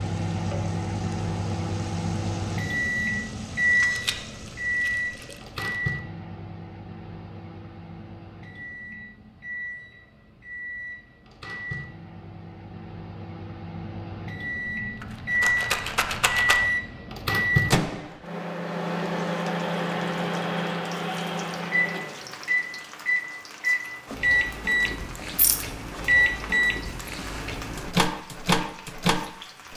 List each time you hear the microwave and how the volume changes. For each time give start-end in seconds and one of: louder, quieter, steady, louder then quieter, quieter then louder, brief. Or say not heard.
0.0-29.7 quieter then louder.